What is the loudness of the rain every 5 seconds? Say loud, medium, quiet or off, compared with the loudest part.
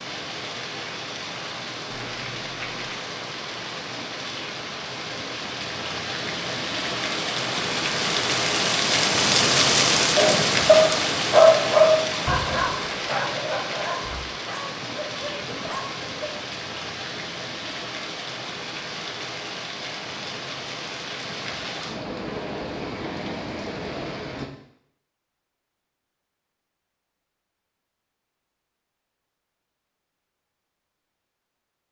medium, loud, loud, medium, medium, off, off.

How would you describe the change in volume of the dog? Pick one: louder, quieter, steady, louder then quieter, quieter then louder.
quieter.